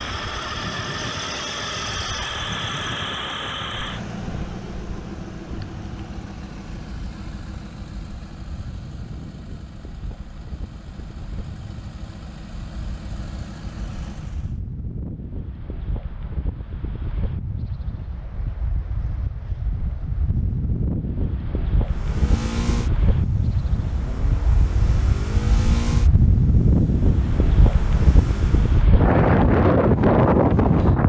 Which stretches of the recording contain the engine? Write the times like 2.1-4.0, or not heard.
0.0-14.6, 21.9-28.9.